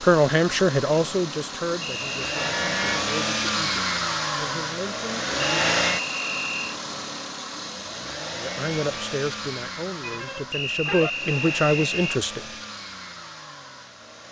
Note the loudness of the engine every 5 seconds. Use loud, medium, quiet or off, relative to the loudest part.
loud, loud, medium.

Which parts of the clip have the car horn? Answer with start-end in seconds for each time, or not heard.
2.3-3.0, 10.0-11.1.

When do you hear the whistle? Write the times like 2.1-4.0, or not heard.
1.8-2.5, 5.3-6.8, 10.5-12.2.